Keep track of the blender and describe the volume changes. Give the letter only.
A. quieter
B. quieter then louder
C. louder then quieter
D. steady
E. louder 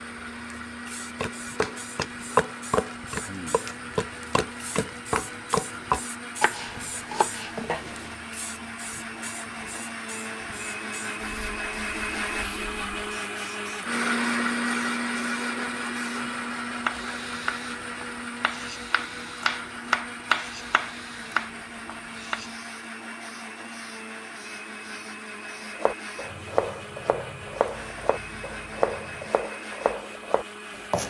C.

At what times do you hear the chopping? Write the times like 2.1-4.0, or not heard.
1.2-8.2, 16.9-22.4, 25.8-31.0.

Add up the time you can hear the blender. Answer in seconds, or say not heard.
31 s.